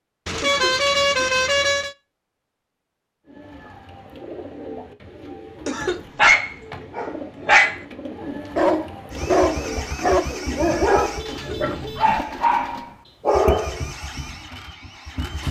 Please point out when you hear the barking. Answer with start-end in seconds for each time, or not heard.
6.2-7.8, 8.6-13.8.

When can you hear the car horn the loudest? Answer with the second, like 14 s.
1 s.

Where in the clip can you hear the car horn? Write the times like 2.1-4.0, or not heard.
0.2-1.9, 11.1-12.2.